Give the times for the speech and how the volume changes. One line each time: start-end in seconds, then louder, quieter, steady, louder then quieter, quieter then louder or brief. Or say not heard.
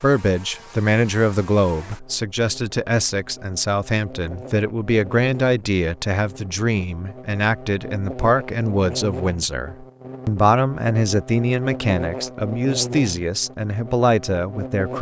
0.0-14.9 steady.